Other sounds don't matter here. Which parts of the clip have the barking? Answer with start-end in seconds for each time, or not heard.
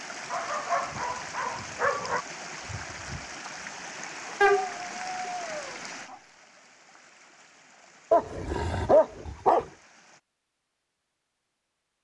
0.3-2.2, 4.4-6.2, 8.1-9.7.